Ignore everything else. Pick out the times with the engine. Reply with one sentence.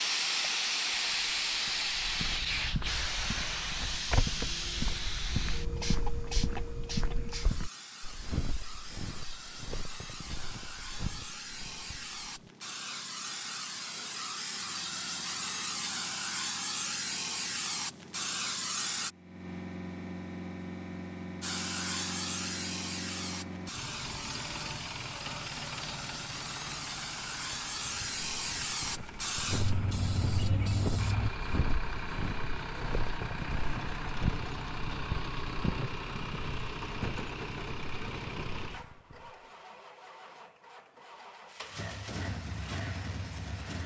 The engine can be heard from 14.6 to 43.8 s.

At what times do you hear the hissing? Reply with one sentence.
The hissing can be heard from 0.0 to 19.1 s and from 21.4 to 31.3 s.